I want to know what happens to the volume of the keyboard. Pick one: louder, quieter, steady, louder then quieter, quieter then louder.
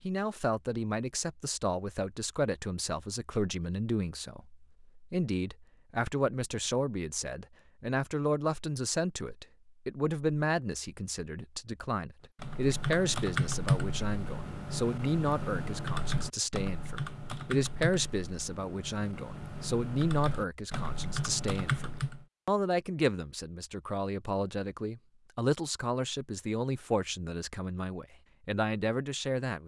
quieter then louder.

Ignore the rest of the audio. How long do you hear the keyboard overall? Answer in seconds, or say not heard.
10 s.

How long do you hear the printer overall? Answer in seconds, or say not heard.
not heard.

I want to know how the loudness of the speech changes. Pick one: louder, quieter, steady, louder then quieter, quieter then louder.
steady.